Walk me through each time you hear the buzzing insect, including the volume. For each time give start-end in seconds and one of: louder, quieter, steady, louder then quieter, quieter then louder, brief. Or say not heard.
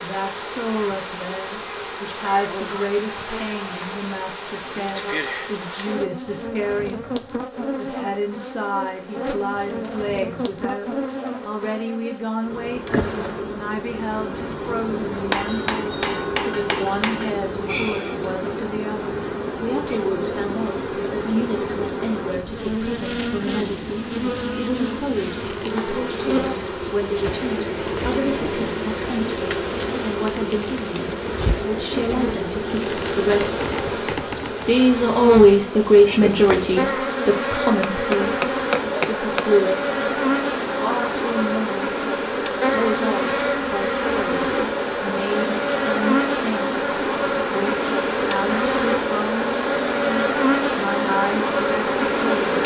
0.0-52.6 louder.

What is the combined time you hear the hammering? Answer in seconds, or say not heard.
4 s.